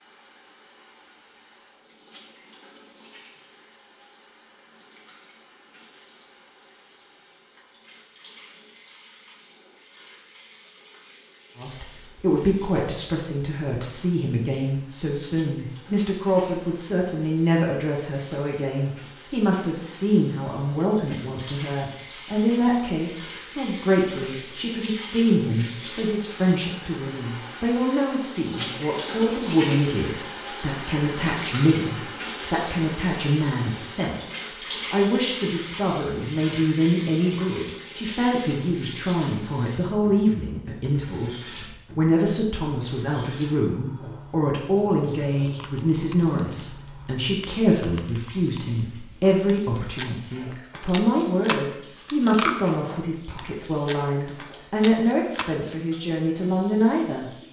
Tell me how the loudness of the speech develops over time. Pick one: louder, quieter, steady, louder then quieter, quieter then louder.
steady.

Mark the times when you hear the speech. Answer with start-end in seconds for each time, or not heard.
11.6-57.2.